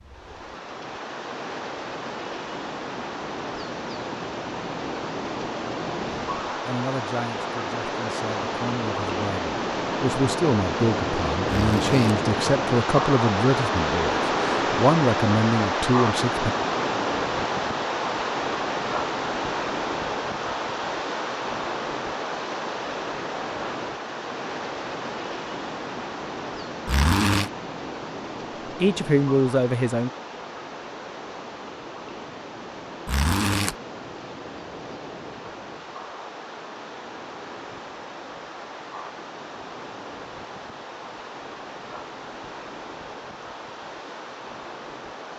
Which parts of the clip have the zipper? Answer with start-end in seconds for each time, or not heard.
11.7-12.1, 26.9-27.5, 33.0-33.8.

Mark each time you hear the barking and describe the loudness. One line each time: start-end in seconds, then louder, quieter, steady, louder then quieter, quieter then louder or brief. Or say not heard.
not heard.